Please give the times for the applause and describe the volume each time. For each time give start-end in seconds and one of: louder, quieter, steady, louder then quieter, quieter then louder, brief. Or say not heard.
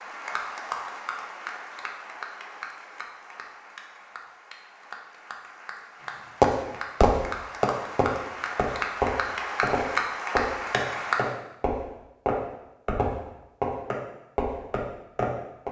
0.0-11.3 quieter then louder.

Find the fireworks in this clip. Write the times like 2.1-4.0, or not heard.
6.4-15.6.